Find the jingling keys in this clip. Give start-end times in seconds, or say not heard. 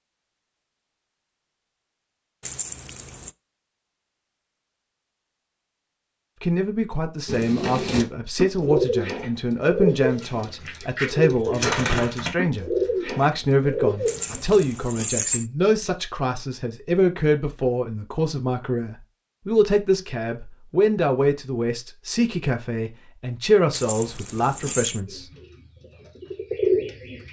2.4-3.3, 14.1-15.4, 23.7-25.0.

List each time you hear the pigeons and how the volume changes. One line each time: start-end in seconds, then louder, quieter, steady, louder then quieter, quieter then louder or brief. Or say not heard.
7.2-14.4 quieter then louder
25.1-27.2 brief.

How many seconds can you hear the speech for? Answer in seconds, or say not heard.
19 s.